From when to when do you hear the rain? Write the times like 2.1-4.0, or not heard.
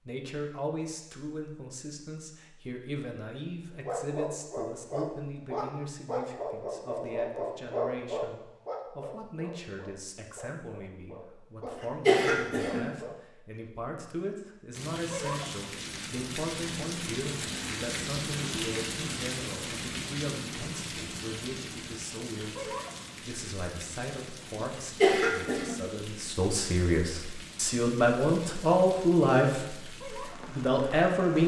14.7-31.4.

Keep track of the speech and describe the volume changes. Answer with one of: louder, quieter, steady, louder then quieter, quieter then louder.
louder.